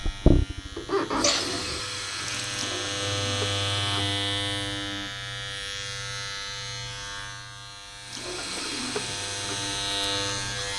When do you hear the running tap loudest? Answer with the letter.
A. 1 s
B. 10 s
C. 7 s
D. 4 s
A.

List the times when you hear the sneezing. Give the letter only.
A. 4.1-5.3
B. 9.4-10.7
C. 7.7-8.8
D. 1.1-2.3
D.